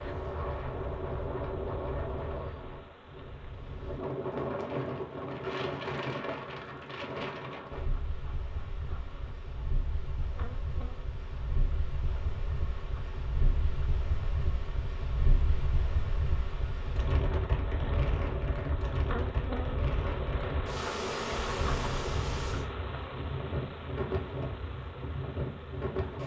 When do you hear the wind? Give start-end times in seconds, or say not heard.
0.0-26.2.